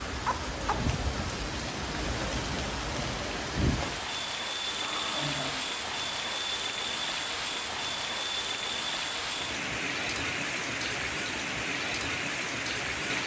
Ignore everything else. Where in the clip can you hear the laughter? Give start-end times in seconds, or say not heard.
4.6-5.5.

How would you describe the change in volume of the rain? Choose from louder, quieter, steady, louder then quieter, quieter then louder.
steady.